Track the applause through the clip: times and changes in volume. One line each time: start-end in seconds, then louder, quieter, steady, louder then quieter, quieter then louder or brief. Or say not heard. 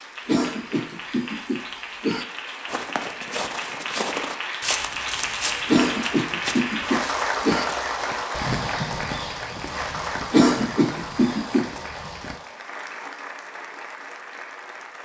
0.0-15.0 louder then quieter.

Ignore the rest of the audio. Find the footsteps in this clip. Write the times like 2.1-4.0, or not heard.
2.6-12.4.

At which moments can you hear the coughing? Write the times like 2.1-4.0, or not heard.
0.2-2.2, 5.7-7.7, 10.3-11.7.